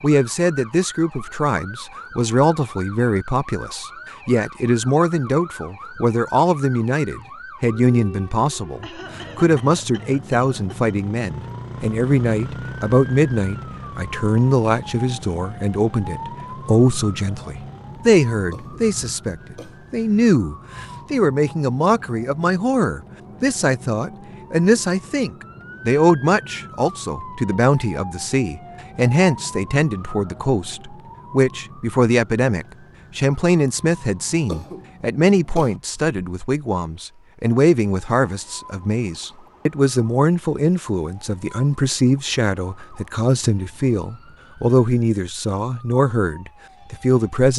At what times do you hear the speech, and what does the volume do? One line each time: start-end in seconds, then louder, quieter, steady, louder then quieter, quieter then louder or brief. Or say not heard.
0.0-47.5 steady.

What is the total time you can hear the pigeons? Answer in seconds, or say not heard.
not heard.